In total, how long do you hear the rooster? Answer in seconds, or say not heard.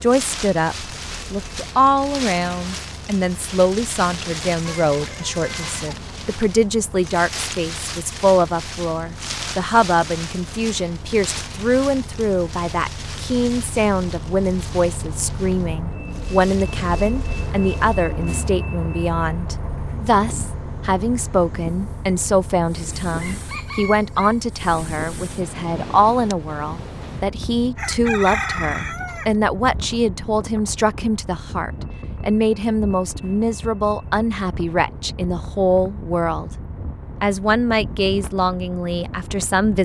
4 s.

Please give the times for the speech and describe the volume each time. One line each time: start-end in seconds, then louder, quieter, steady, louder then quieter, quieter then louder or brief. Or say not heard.
0.0-36.5 steady
37.2-39.8 brief.